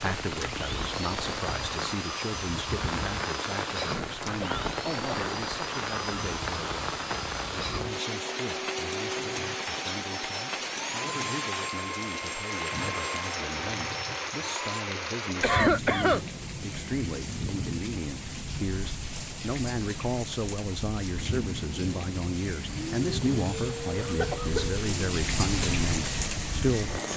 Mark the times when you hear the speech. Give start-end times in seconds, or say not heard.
0.0-27.1.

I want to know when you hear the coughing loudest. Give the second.
16 s.